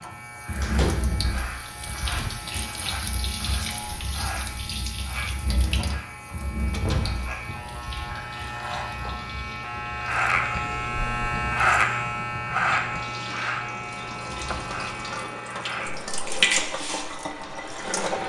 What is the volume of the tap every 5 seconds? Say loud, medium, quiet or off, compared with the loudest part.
medium, medium, medium, loud.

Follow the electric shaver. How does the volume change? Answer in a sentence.
The volume of the electric shaver goes up, then down.